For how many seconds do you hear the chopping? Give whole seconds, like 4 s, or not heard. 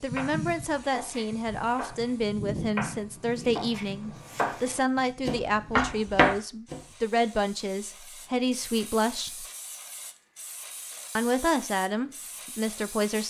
7 s.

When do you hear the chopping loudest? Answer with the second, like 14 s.
6 s.